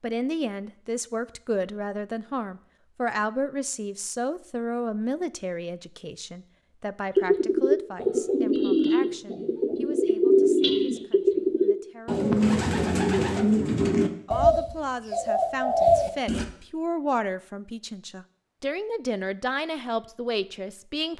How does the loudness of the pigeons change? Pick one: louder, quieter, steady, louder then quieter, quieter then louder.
steady.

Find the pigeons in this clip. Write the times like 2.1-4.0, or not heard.
7.2-16.4.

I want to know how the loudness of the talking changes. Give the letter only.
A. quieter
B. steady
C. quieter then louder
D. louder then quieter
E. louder
C.